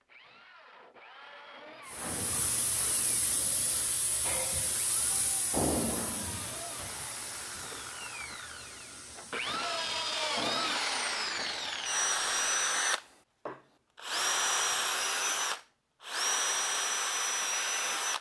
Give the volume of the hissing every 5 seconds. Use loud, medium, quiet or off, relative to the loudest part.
loud, loud, medium, off.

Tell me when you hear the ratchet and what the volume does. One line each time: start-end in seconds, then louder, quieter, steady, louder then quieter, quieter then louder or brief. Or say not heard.
not heard.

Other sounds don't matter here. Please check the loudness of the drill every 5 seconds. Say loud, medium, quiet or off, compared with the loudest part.
quiet, medium, loud, loud.